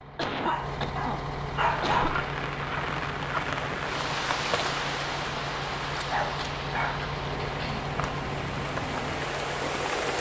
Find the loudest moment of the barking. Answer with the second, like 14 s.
2 s.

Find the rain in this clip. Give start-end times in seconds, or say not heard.
1.5-10.1.